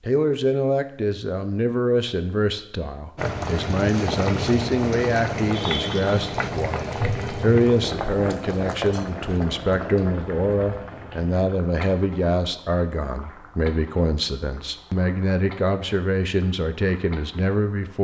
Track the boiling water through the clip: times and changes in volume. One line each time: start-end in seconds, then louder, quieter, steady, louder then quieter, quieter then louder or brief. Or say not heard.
3.1-17.9 quieter.